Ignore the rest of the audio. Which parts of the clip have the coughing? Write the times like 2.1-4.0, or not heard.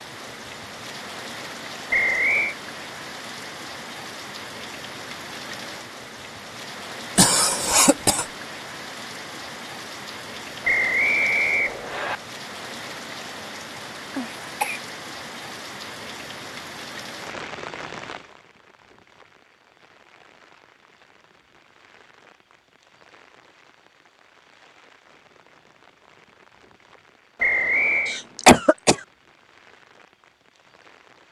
7.2-8.2, 14.2-14.8, 28.1-29.0.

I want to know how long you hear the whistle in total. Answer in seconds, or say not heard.
3 s.